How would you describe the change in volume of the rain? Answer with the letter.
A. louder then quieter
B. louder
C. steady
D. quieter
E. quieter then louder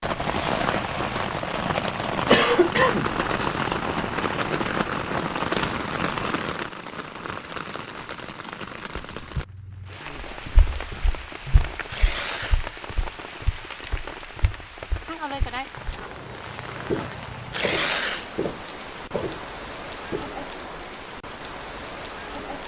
D.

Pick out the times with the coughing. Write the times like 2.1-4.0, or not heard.
2.3-3.1.